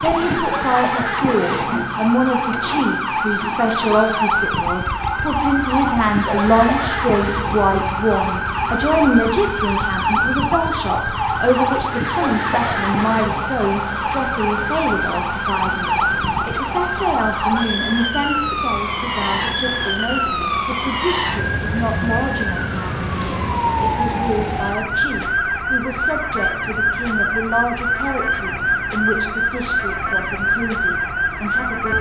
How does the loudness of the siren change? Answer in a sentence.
The volume of the siren stays about the same.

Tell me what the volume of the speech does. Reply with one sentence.
The loudness of the speech goes down.